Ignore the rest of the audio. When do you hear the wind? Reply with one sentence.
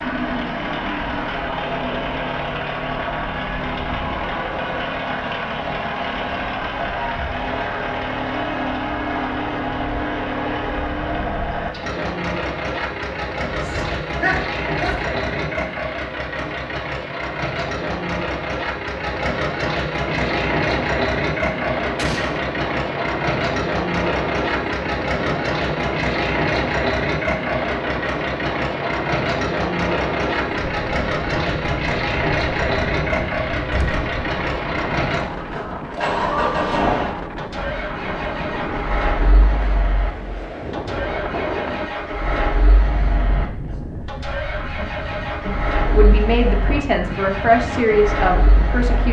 The wind can be heard from 20.1 to 49.0 s.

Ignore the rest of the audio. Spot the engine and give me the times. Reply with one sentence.
You can hear the engine from 0.0 to 49.0 s.